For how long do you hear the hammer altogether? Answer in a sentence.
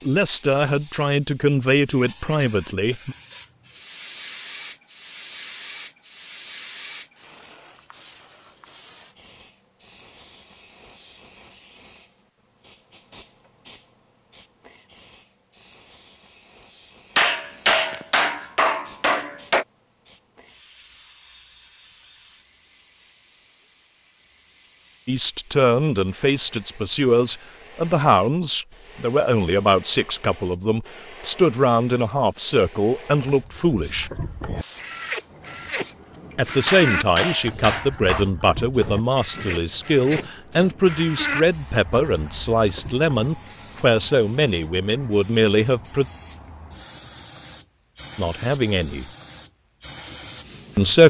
The hammer can be heard for 4 seconds in total.